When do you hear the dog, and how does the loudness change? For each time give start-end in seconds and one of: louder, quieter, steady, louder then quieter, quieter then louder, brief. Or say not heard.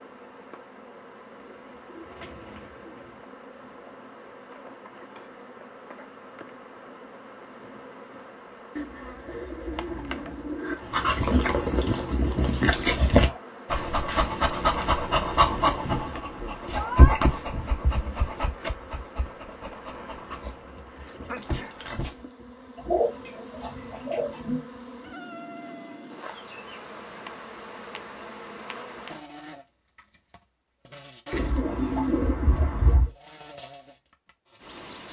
10.8-22.2 quieter.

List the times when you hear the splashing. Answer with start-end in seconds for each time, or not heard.
not heard.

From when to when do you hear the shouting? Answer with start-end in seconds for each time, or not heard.
16.7-17.1.